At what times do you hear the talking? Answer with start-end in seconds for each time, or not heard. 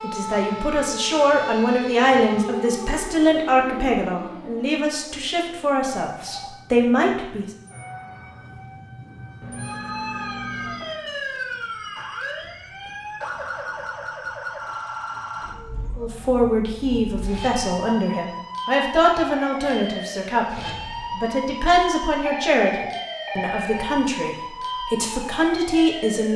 0.0-7.5, 15.9-26.3.